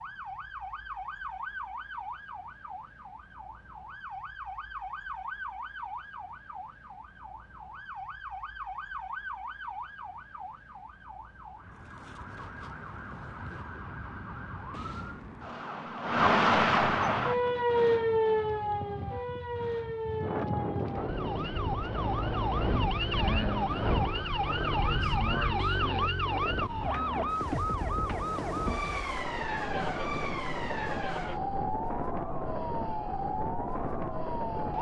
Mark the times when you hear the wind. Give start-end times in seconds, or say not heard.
17.2-34.7.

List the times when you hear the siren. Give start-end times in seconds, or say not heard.
0.0-34.7.